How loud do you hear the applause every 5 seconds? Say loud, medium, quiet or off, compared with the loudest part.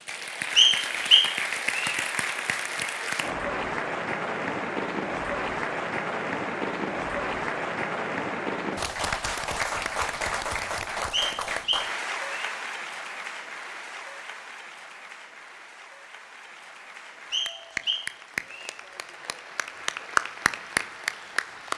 loud, loud, medium, medium, loud.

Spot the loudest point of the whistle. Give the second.
1 s.